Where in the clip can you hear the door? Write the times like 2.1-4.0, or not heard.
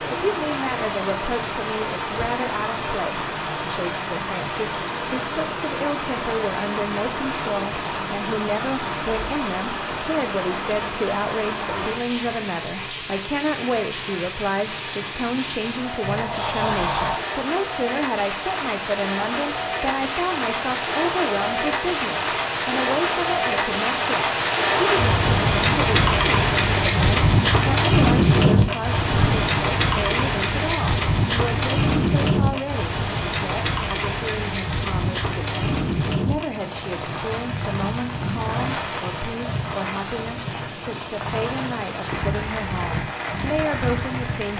16.0-17.2, 29.0-29.6.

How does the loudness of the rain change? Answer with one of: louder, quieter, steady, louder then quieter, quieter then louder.
louder then quieter.